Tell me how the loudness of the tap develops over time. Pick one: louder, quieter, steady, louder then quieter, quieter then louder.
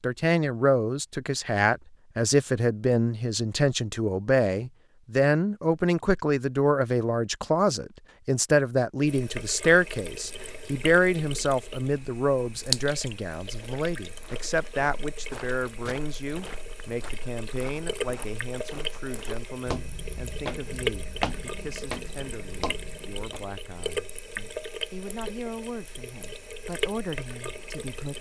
quieter then louder.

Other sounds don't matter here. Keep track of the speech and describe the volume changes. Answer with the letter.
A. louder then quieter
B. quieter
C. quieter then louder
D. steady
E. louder
B.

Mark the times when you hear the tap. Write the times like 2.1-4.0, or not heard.
9.0-28.1.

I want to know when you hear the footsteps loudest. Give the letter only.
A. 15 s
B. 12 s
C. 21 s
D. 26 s
C.